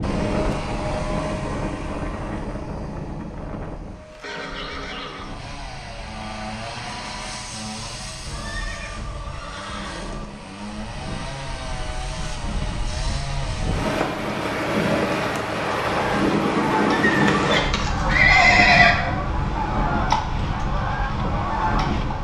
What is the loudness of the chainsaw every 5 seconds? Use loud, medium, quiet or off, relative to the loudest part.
loud, loud, loud, off, off.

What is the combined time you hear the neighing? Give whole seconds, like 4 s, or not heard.
5 s.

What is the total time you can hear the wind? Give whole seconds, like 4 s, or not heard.
22 s.